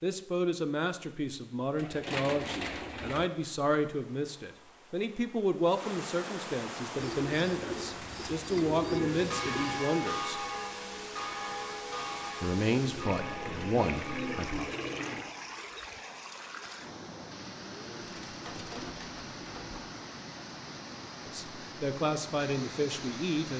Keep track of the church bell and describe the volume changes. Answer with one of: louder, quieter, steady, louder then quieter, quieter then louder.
quieter.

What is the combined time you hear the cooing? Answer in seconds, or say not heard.
9 s.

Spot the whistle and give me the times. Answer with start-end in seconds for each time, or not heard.
not heard.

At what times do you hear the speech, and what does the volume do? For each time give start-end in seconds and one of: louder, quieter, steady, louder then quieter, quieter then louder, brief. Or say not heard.
0.0-10.4 steady
12.4-14.7 brief
21.2-23.5 brief.